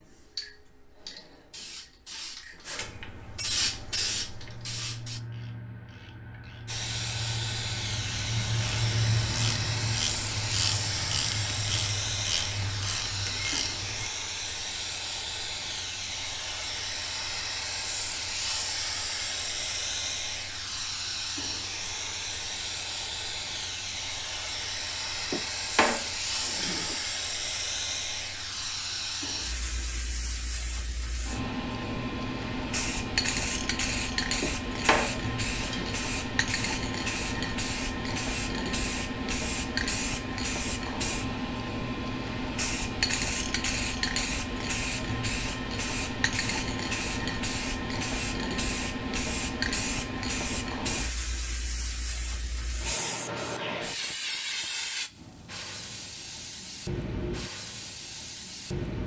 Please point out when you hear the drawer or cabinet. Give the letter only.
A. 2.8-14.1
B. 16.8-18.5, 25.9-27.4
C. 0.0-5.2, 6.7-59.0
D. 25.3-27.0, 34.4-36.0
D.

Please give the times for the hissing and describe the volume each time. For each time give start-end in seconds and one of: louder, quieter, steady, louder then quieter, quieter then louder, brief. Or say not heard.
0.0-5.2 louder
6.7-59.0 steady.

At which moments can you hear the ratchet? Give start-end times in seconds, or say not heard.
2.8-14.1.